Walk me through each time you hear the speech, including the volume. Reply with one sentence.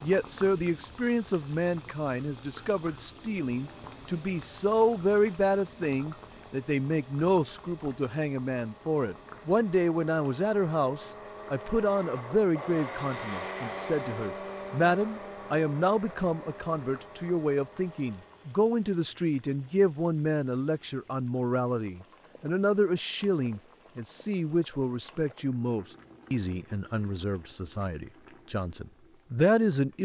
The speech can be heard from 0.0 to 30.0 s, at a steady volume.